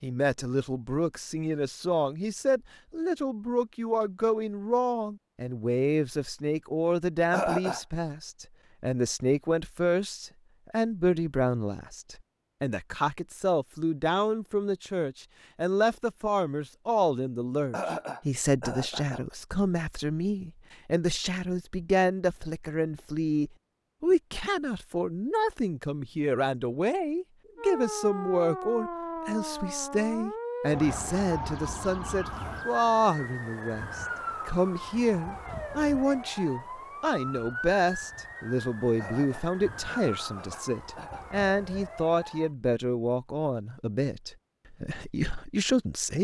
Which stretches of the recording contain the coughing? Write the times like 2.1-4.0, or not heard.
7.3-7.8, 17.7-19.2, 39.0-41.2.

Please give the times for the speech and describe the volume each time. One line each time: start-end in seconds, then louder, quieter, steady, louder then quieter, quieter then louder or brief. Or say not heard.
0.0-46.1 steady.